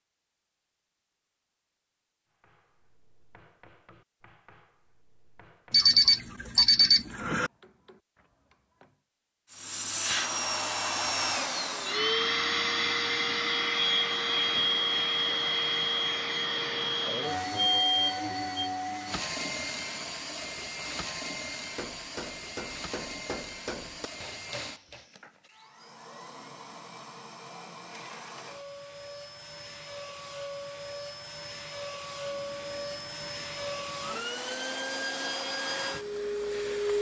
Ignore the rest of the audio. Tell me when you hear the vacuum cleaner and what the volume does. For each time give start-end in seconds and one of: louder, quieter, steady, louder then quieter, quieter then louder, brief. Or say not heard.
9.5-36.9 quieter then louder.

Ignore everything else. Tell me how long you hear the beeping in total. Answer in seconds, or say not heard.
3 s.